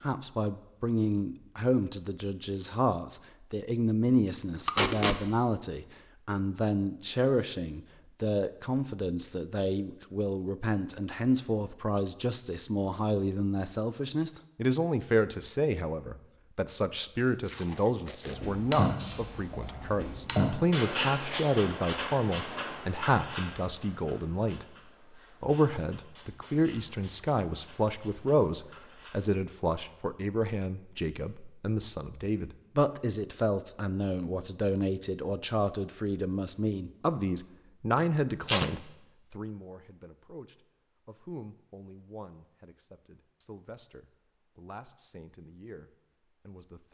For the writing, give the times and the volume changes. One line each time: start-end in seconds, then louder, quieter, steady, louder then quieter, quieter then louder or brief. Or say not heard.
18.2-29.2 quieter.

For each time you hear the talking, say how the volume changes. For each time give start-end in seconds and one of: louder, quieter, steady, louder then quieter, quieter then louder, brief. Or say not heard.
0.0-46.8 quieter.